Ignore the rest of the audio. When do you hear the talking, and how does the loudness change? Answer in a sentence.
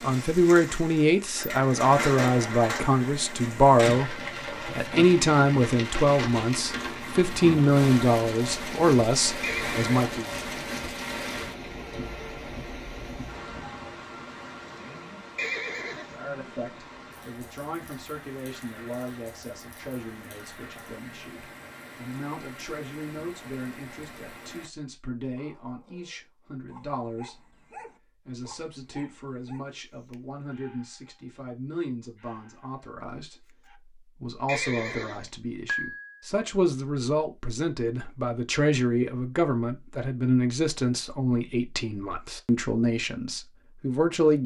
You can hear the talking from 0.0 to 10.3 s, at a steady volume; and from 16.1 to 44.4 s, getting louder.